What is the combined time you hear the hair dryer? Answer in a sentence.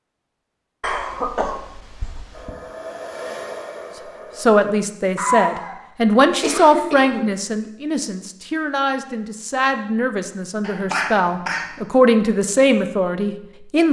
You can hear the hair dryer for 2 seconds altogether.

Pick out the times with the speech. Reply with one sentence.
The speech can be heard from 4.3 to 13.8 s.